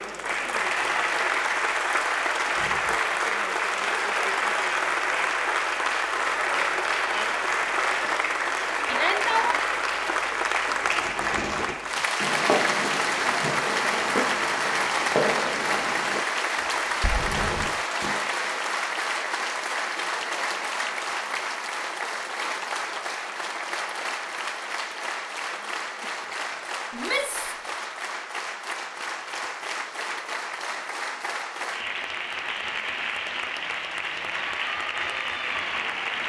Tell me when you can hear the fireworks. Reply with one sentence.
You can hear the fireworks from 10.8 to 18.3 s.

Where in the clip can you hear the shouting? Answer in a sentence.
You can hear the shouting from 8.8 to 9.6 s and from 26.9 to 27.6 s.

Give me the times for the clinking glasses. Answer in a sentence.
You can't hear the clinking glasses here.